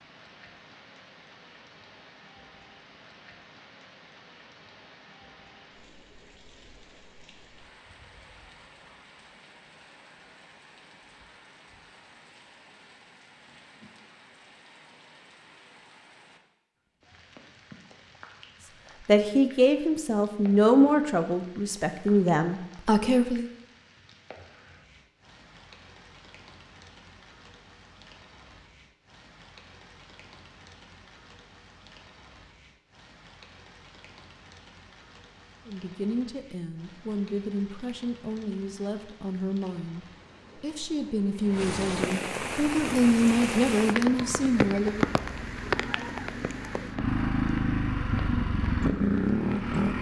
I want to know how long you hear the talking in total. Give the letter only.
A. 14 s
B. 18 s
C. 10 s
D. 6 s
A.